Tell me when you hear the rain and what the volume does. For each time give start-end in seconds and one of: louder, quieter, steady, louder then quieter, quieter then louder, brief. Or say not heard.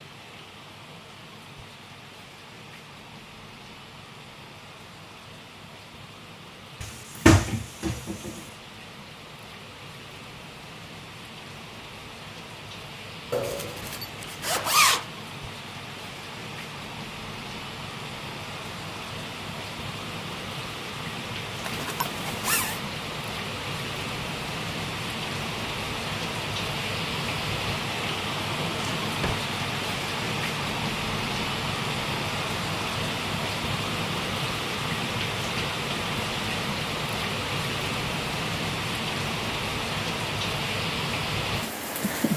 0.0-42.3 louder.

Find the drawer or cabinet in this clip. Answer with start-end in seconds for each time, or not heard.
6.8-8.3, 28.6-29.5.